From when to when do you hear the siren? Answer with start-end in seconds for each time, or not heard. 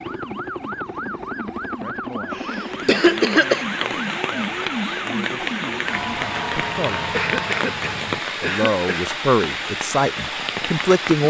0.0-8.2.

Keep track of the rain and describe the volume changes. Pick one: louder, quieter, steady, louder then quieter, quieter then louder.
steady.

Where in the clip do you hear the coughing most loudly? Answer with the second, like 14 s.
3 s.